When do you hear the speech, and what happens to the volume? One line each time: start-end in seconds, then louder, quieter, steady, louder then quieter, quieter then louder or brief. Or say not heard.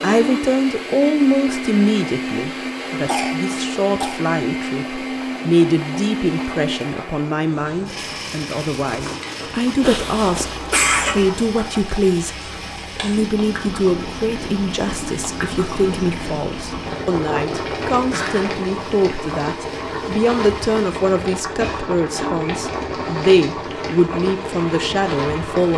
0.0-25.7 steady.